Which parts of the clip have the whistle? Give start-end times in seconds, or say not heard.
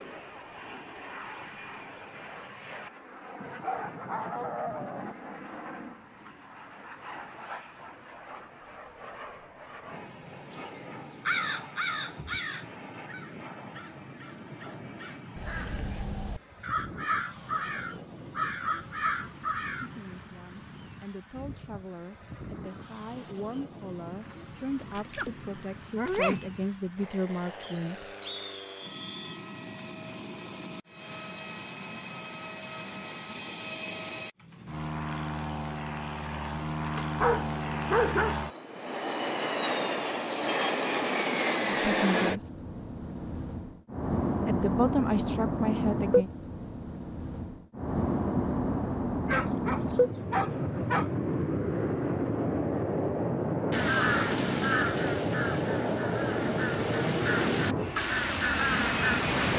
27.6-29.4.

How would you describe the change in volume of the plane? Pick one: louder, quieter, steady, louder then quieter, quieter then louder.
louder.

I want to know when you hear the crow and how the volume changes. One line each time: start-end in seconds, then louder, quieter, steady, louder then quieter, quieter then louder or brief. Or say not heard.
10.5-19.9 quieter then louder
53.7-59.5 quieter then louder.